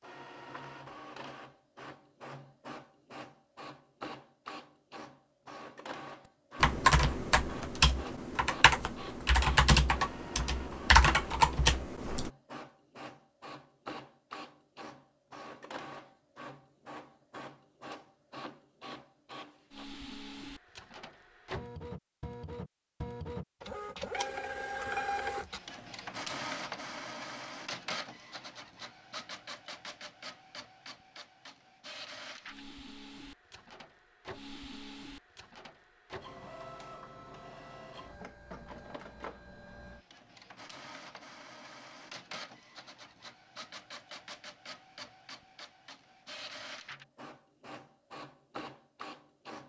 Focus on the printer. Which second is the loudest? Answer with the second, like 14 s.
25 s.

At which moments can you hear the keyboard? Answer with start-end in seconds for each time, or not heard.
6.6-12.3.